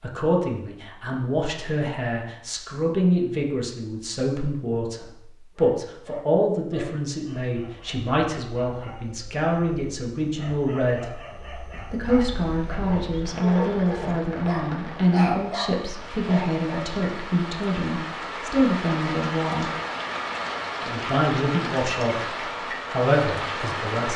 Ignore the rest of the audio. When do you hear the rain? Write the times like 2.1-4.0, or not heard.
12.0-24.1.